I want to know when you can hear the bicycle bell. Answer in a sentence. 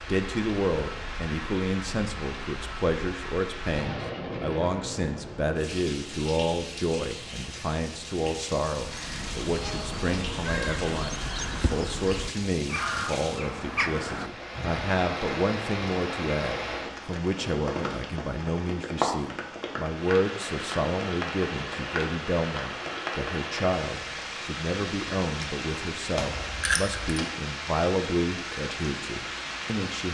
The bicycle bell can be heard from 26.1 to 27.1 s.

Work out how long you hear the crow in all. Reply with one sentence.
You can hear the crow for 6 seconds altogether.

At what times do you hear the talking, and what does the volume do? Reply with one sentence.
The talking can be heard from 0.0 to 30.0 s, at a steady volume.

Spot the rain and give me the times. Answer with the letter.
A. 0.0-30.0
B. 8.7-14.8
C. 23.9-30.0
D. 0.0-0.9
A.